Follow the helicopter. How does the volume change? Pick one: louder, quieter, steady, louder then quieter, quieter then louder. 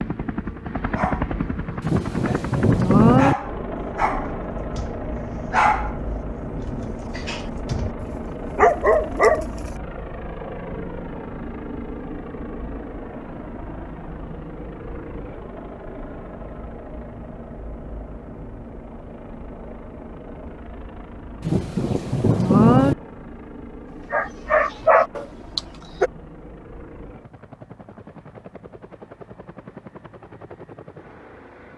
quieter.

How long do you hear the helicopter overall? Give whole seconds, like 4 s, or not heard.
32 s.